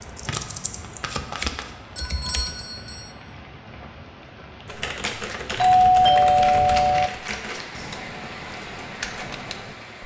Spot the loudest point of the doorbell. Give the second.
6 s.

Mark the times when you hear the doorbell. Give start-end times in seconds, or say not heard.
1.9-3.1, 5.5-7.1.